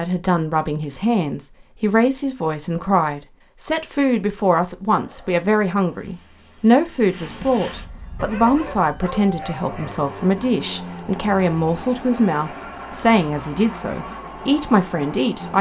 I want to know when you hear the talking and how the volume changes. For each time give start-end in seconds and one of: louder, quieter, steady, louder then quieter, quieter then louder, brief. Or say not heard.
0.0-15.5 steady.